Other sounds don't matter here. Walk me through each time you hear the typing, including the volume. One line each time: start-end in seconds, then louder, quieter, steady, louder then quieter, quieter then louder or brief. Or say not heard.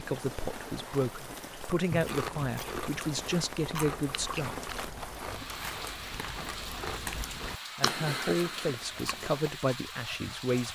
not heard.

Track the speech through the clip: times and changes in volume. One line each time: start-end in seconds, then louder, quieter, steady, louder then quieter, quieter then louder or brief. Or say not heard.
0.0-4.5 steady
7.8-10.7 brief.